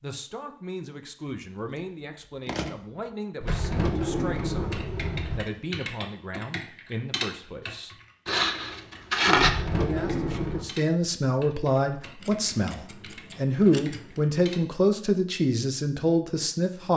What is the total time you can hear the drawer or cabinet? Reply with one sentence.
You can hear the drawer or cabinet for 3 seconds altogether.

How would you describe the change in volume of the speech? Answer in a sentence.
The loudness of the speech goes up.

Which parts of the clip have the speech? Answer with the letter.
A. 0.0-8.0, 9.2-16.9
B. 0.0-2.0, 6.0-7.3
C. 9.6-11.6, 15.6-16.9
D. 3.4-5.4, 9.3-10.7
A.